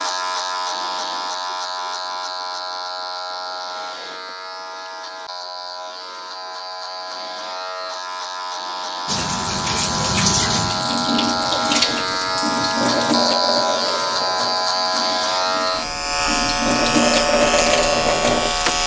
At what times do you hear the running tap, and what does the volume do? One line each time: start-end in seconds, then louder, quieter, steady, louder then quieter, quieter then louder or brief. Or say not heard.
9.1-18.8 quieter then louder.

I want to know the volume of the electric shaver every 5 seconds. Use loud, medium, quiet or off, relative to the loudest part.
medium, medium, loud, loud.